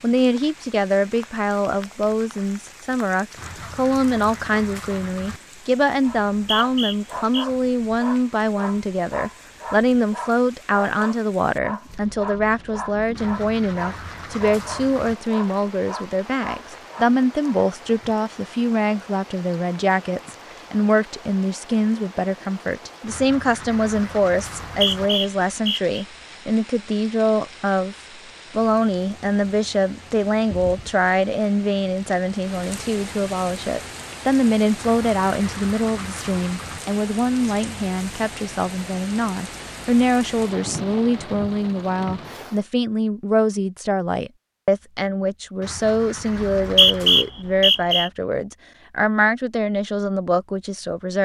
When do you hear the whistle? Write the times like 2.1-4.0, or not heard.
6.0-7.5, 24.6-26.1, 46.4-48.1.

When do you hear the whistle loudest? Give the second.
47 s.